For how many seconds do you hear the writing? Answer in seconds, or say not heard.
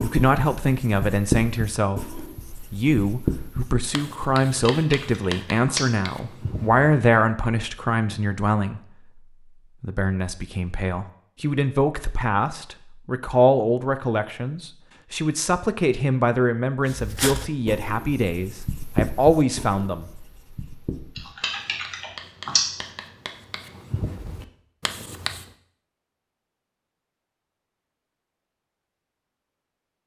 16 s.